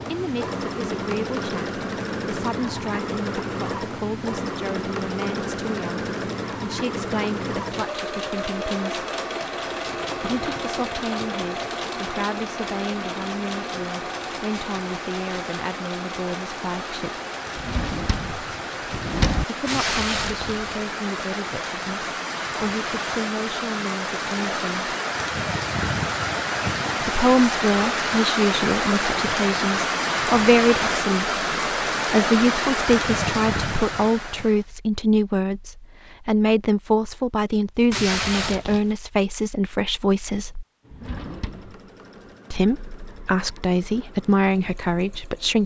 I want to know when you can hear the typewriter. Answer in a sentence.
The typewriter can't be heard in this clip.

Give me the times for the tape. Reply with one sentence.
You can hear the tape from 19.6 to 20.9 s and from 37.9 to 39.0 s.